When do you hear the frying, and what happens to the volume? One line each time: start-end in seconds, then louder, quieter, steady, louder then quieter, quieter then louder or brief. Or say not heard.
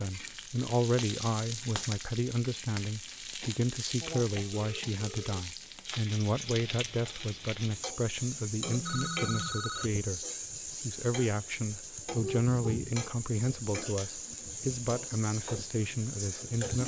0.0-16.8 steady.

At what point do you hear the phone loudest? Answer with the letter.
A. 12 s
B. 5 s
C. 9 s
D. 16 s
C.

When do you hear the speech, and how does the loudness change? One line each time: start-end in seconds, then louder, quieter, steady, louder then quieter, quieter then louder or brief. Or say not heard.
0.0-16.8 steady.